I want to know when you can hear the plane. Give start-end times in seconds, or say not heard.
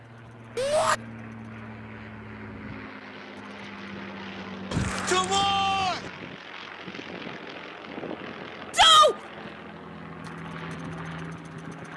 0.0-11.9.